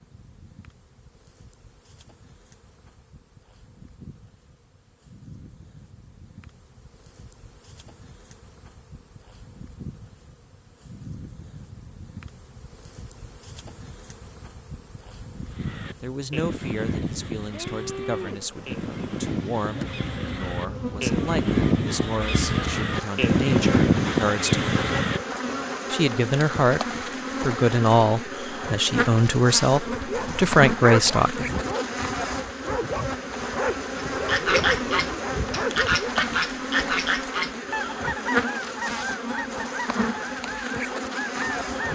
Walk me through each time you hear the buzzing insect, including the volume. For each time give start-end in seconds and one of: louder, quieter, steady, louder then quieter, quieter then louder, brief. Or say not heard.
0.0-41.9 louder.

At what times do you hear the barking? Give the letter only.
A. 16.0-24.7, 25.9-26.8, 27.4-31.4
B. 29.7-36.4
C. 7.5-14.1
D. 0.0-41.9
B.